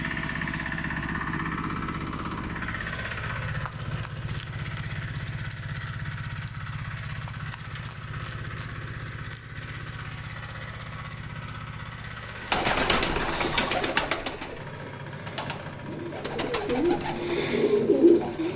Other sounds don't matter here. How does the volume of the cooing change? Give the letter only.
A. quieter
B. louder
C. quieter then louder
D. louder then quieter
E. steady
C.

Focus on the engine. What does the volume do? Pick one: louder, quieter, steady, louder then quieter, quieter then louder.
quieter.